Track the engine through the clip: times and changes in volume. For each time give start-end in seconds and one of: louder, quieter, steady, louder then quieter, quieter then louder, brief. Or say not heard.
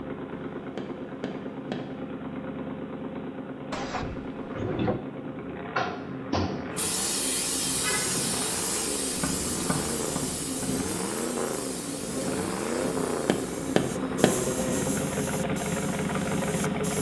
0.0-16.9 louder.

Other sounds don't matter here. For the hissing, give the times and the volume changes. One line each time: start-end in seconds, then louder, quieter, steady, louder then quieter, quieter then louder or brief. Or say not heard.
6.8-16.9 quieter.